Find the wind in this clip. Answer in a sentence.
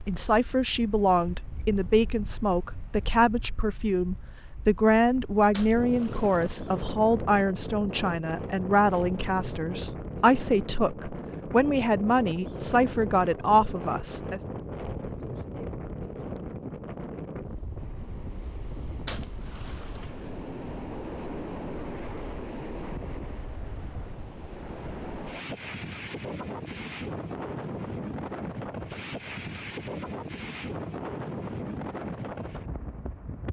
You can hear the wind from 0.0 to 33.4 s.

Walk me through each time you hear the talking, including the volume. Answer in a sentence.
The talking can be heard from 0.1 to 14.4 s, at a steady volume.